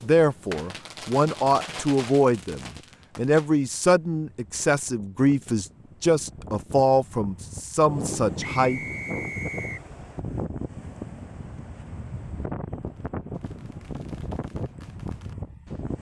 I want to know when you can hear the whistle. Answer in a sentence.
The whistle can be heard from 8.5 to 9.8 s.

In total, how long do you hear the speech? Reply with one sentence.
The speech can be heard for 9 seconds in total.